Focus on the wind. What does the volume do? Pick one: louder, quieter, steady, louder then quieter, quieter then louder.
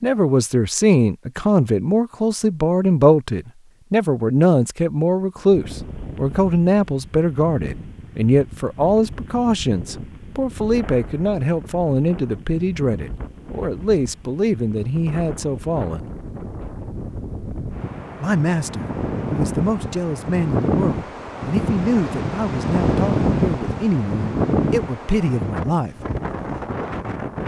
louder.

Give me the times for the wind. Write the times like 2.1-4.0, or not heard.
5.5-27.4.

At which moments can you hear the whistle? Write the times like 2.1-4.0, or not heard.
not heard.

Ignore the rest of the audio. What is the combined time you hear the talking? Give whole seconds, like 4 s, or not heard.
24 s.